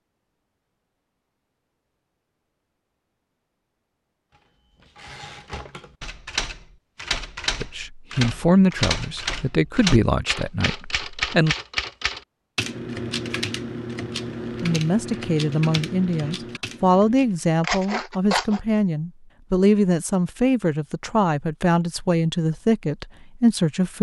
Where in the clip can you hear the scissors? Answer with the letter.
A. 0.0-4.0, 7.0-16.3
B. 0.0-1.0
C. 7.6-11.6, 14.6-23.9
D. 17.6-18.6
D.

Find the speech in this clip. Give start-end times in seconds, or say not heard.
7.6-11.6, 14.6-23.9.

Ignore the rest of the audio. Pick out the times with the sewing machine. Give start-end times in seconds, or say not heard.
not heard.